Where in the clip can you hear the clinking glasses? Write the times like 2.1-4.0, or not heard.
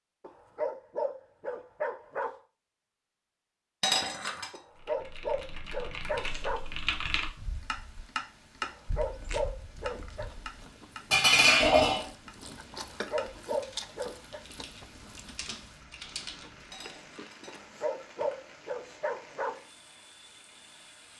3.8-4.5, 11.1-12.1, 16.7-18.4.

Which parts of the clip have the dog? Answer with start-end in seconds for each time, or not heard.
0.2-2.4, 4.5-6.6, 8.6-10.3, 12.8-14.4, 17.4-19.6.